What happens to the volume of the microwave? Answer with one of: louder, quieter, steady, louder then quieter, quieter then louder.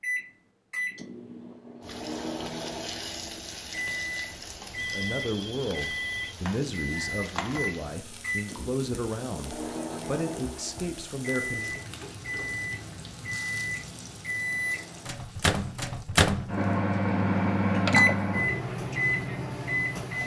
louder.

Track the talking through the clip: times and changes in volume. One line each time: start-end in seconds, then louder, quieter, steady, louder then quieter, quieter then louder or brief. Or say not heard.
4.8-11.8 steady.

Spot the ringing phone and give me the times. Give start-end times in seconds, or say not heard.
4.8-6.3.